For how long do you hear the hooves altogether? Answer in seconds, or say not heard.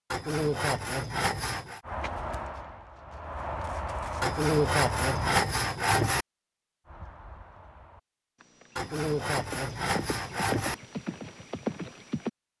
9 s.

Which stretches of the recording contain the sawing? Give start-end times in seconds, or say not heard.
0.1-1.8, 4.2-6.2, 8.8-10.8.